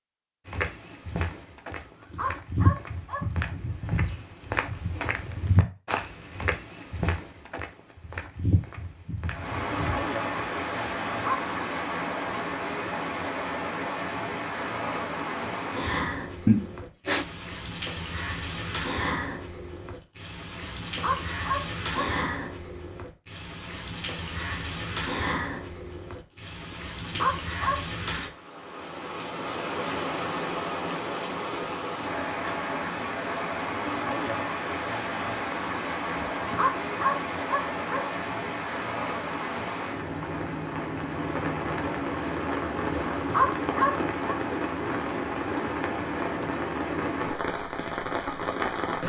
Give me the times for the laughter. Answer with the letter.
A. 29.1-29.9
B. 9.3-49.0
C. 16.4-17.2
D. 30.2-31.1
C.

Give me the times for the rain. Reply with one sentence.
You can hear the rain from 9.3 to 49.0 s.